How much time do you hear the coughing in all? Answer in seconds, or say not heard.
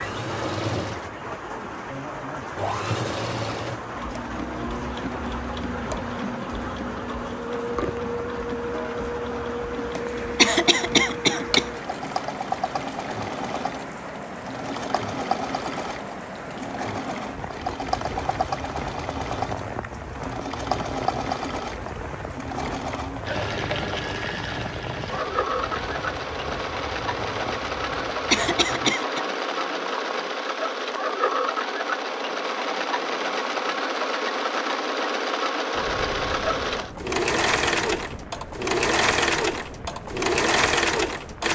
2 s.